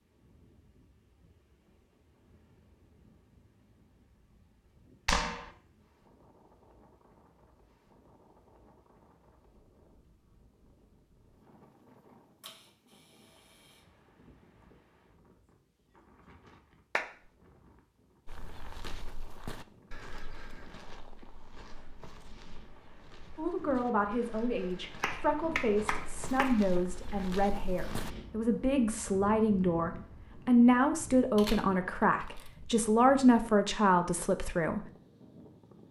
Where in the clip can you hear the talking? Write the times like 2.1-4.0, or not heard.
23.4-34.8.